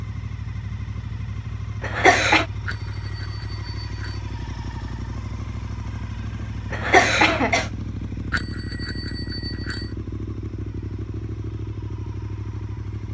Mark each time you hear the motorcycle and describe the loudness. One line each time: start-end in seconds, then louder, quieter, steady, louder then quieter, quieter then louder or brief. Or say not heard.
0.0-13.1 steady.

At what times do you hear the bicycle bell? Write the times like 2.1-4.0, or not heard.
2.6-4.2, 8.3-9.9.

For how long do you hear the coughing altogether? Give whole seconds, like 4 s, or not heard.
2 s.